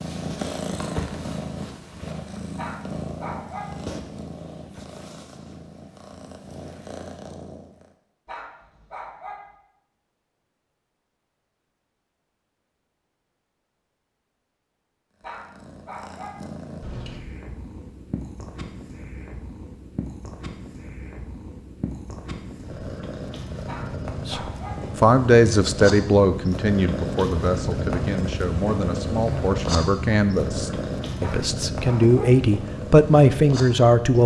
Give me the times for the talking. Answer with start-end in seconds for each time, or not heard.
24.2-34.2.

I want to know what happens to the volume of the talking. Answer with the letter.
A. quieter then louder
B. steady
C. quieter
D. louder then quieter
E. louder
A.